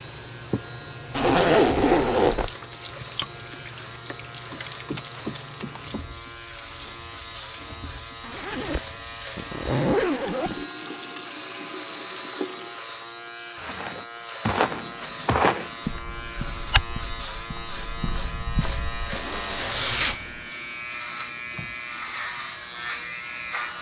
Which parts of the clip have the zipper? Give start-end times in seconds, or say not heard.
1.1-2.5, 8.2-10.7, 19.1-20.4.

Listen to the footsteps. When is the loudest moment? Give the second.
15 s.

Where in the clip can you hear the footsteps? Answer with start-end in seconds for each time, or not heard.
13.6-19.2.